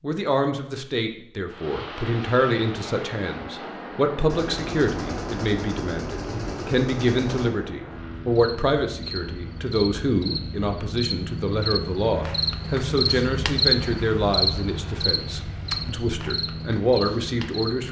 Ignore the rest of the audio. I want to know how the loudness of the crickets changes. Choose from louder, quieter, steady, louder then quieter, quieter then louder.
louder then quieter.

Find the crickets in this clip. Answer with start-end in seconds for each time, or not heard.
8.3-17.8.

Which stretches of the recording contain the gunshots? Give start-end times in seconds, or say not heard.
4.3-7.5.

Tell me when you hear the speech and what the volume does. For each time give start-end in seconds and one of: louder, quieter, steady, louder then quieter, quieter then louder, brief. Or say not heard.
0.0-17.8 steady.